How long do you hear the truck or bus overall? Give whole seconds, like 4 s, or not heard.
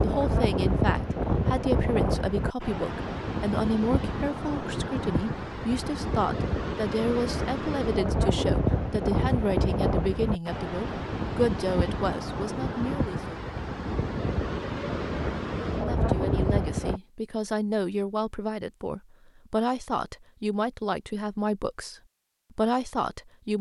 not heard.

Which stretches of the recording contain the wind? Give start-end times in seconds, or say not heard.
0.0-17.0.